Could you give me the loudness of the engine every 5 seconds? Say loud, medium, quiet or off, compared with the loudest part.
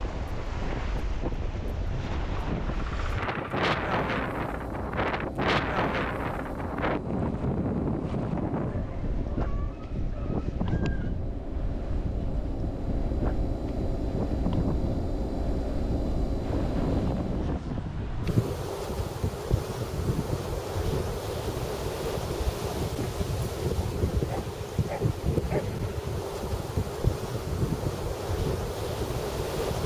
medium, medium, loud, loud, off, off.